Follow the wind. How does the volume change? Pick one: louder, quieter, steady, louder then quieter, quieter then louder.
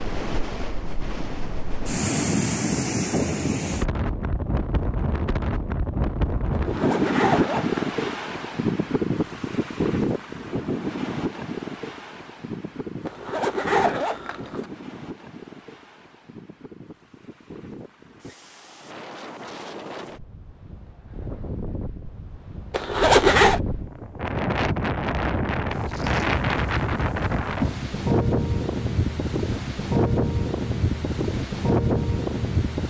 quieter then louder.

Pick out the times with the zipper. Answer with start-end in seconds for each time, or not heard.
6.5-8.2, 13.1-14.7, 22.7-23.6.